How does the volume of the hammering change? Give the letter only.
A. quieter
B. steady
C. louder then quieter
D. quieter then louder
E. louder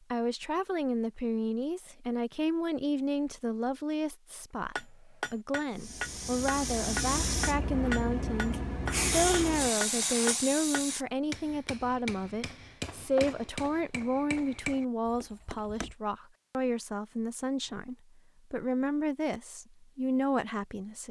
A.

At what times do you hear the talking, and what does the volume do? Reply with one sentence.
You can hear the talking from 0.1 to 21.0 s, at a steady volume.